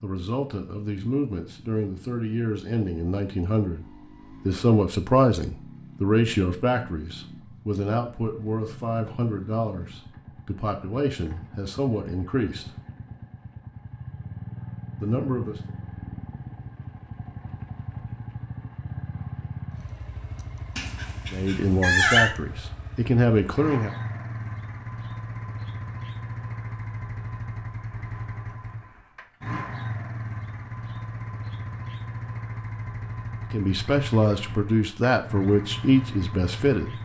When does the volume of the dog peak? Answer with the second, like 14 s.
22 s.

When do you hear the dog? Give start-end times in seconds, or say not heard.
20.8-22.4.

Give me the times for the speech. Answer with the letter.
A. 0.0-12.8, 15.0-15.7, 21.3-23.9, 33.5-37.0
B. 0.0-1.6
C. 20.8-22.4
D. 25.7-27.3
A.